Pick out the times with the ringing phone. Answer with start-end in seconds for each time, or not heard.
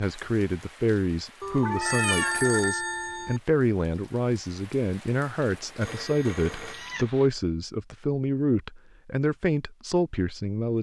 1.4-3.4, 5.8-7.0.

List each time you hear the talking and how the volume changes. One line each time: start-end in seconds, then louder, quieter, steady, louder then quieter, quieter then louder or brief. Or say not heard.
0.0-10.7 steady.